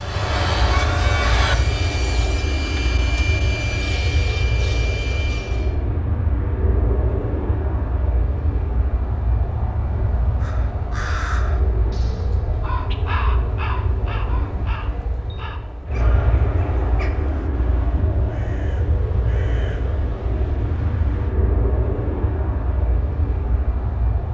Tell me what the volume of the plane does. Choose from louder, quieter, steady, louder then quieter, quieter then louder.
steady.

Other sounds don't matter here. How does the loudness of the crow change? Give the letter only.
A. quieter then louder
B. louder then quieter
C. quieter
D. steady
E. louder
C.